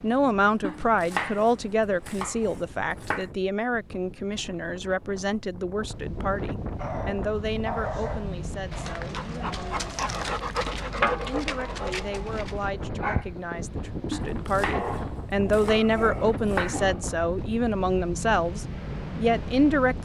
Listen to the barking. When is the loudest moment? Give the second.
11 s.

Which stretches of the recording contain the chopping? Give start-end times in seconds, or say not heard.
0.6-3.2, 14.1-16.9.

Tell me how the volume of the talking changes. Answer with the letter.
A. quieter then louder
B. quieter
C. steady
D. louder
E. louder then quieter
A.